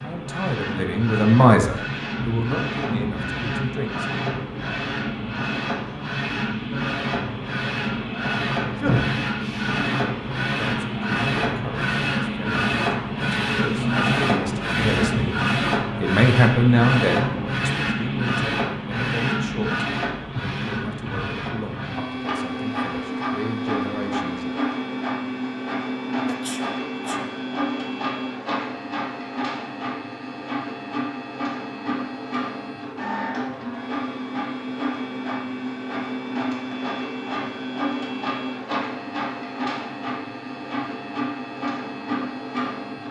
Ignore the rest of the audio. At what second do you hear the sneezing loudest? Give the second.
9 s.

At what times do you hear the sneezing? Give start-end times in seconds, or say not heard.
8.1-9.2, 26.2-27.2.